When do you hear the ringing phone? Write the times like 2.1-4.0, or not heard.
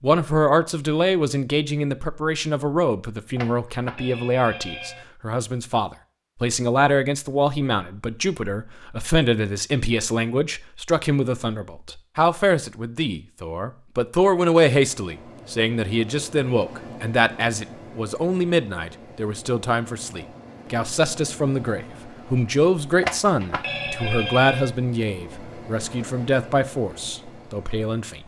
3.4-5.0, 23.0-24.7.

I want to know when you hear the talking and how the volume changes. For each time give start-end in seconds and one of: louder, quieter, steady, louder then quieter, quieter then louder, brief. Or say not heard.
0.0-28.2 steady.